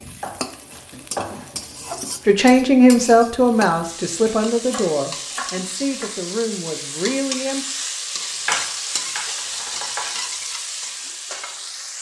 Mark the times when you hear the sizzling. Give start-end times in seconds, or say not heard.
0.0-11.9.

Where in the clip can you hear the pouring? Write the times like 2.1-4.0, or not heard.
not heard.